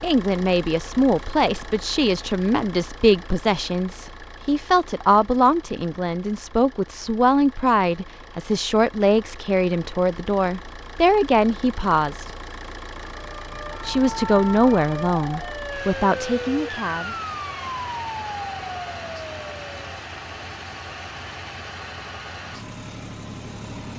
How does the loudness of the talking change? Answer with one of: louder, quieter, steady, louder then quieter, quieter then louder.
steady.